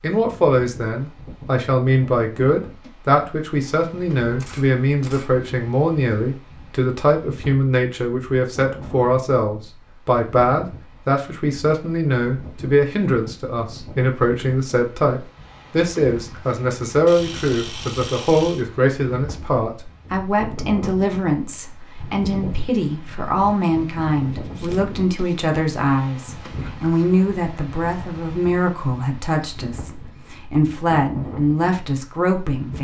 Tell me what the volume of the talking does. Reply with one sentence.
The volume of the talking stays about the same.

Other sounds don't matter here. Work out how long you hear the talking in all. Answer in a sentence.
You can hear the talking for 33 seconds altogether.